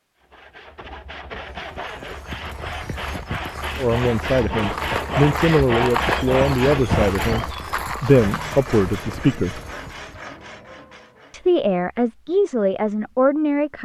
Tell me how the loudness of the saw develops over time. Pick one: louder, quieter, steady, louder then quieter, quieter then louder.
louder then quieter.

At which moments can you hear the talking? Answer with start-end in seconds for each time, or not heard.
3.8-9.6, 11.3-13.8.